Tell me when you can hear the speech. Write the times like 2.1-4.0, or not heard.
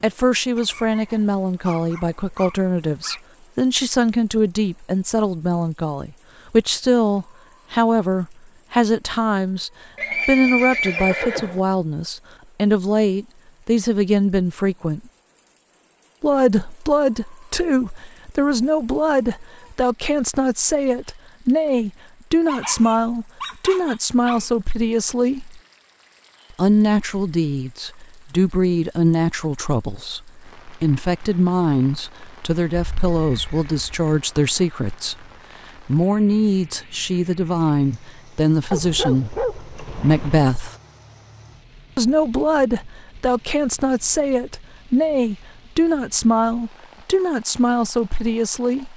0.0-15.0, 16.2-25.6, 26.5-35.2, 35.9-40.8, 42.0-48.9.